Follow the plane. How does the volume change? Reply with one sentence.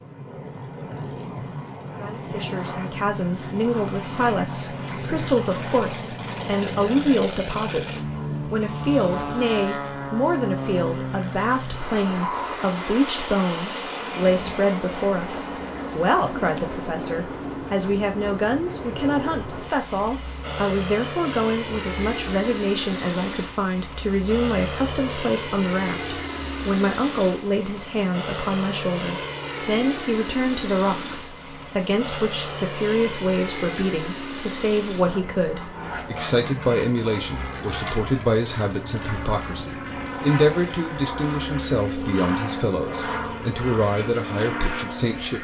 The loudness of the plane stays about the same.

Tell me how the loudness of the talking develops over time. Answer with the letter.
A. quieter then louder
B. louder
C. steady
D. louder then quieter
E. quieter
C.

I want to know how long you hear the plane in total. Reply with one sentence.
You can hear the plane for 45 seconds altogether.